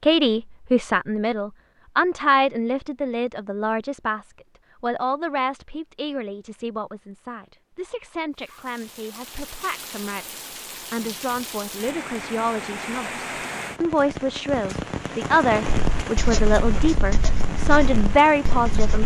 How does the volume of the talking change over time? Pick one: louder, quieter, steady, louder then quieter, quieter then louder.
quieter then louder.